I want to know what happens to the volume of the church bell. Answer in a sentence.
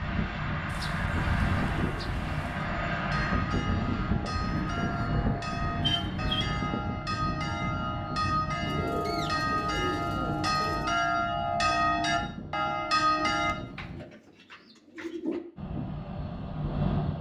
The loudness of the church bell goes up.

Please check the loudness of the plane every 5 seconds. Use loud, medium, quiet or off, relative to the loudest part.
loud, loud, medium, loud.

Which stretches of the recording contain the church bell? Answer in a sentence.
You can hear the church bell from 2.5 to 13.6 s.